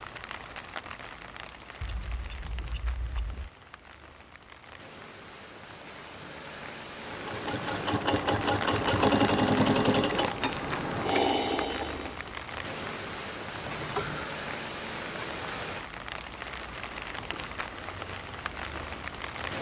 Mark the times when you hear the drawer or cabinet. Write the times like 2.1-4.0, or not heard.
not heard.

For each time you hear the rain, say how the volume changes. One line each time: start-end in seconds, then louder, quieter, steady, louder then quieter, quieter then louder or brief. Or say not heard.
0.0-19.5 louder.